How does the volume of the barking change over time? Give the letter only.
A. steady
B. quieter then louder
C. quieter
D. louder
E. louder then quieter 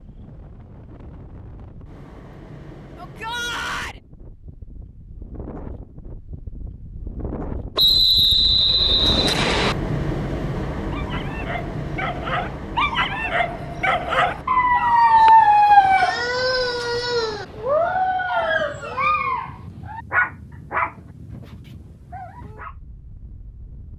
E.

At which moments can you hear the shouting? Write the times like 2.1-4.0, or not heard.
3.0-4.0.